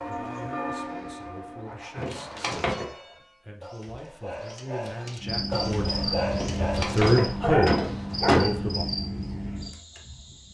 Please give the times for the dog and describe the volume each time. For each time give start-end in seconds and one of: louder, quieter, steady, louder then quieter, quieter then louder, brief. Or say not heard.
1.6-8.6 louder.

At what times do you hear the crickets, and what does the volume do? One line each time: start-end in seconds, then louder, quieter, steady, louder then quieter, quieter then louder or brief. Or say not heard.
5.2-10.4 quieter.